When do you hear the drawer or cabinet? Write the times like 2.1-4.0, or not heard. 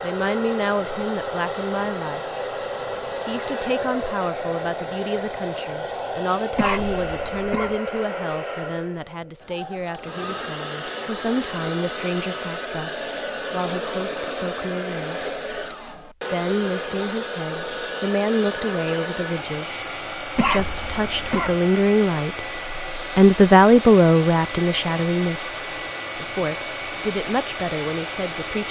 not heard.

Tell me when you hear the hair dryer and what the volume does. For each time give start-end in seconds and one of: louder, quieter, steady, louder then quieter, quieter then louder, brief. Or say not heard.
0.0-28.6 steady.